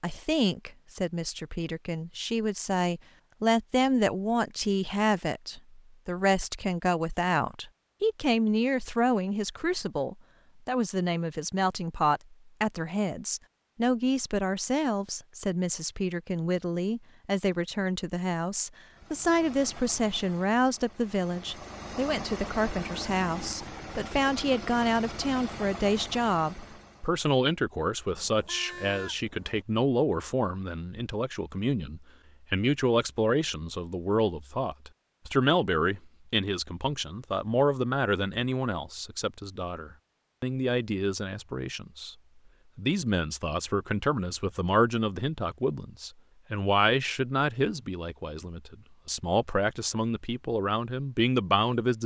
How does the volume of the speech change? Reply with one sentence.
The volume of the speech stays about the same.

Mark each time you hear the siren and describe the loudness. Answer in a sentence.
The siren can't be heard in this clip.